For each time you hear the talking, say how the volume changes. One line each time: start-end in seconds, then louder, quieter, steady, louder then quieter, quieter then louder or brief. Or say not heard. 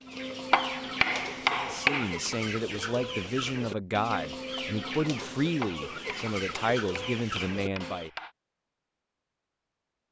1.6-8.1 steady.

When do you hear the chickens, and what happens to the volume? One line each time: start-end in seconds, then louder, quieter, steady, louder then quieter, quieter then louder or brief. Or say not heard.
0.0-8.1 steady.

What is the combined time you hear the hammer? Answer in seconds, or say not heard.
4 s.